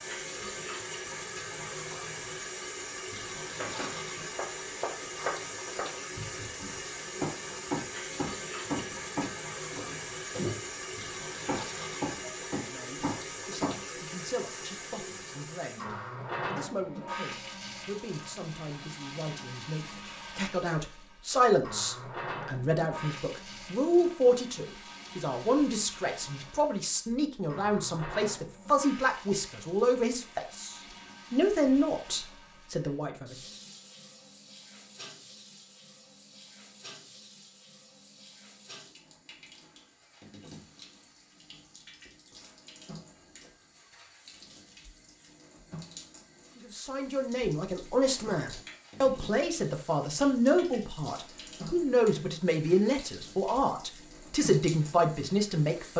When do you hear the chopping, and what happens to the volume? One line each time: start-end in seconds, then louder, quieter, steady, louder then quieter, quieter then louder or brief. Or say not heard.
3.5-14.0 steady.